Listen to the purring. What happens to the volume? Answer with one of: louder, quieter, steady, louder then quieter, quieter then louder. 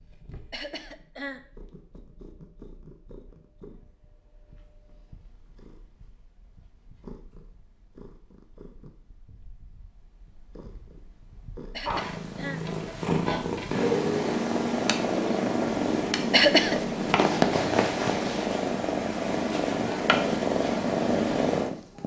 louder.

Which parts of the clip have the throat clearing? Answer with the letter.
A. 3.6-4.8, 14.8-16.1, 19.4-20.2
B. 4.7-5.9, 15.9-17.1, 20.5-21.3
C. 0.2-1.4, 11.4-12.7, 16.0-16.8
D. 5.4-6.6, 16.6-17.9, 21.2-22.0
C.